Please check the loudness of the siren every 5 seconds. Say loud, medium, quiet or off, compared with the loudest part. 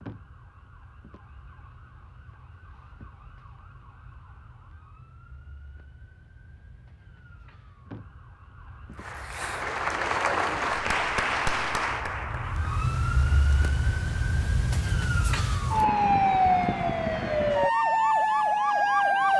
quiet, quiet, medium, loud.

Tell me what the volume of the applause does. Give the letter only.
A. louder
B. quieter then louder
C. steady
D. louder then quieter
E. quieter
E.